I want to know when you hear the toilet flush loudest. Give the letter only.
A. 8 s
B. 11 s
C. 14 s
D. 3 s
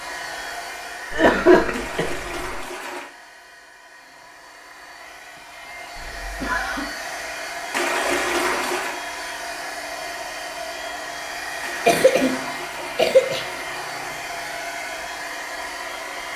A.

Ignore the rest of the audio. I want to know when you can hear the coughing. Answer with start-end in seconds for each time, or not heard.
1.1-2.6, 6.0-6.9, 11.8-12.3, 12.9-13.4.